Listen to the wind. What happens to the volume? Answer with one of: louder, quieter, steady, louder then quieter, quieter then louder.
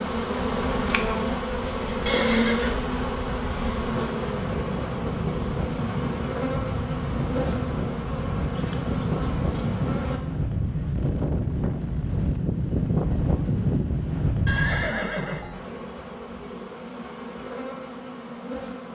louder.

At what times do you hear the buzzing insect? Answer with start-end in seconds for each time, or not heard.
0.0-10.2, 15.5-18.9.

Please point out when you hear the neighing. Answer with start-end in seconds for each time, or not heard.
2.0-2.8, 14.4-15.7.